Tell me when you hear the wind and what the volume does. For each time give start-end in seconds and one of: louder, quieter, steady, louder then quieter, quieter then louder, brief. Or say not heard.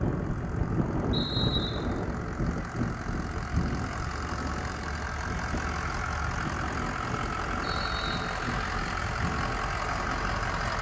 0.0-10.7 quieter.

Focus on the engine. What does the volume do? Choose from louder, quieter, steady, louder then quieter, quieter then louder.
louder.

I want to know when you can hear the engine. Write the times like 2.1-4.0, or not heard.
0.0-10.7.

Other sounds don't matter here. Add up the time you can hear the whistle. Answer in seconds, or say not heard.
2 s.